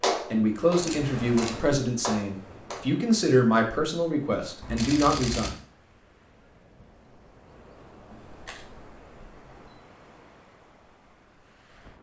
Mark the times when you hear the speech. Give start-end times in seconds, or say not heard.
0.3-5.5.